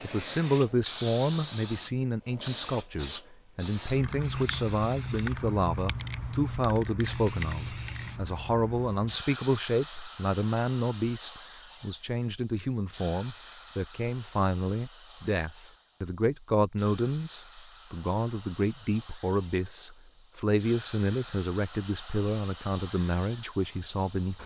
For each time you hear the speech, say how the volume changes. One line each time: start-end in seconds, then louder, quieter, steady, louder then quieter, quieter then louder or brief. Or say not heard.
0.0-24.4 steady.